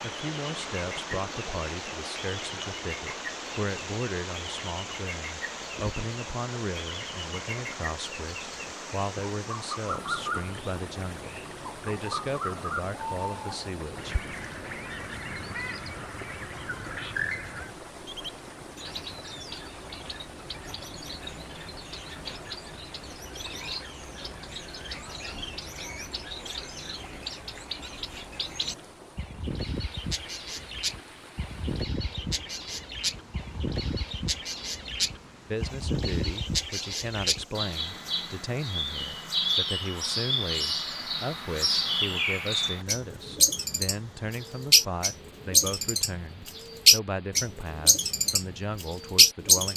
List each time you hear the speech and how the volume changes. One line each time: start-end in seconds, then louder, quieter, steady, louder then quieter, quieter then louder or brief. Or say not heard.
0.0-14.2 steady
35.5-49.7 steady.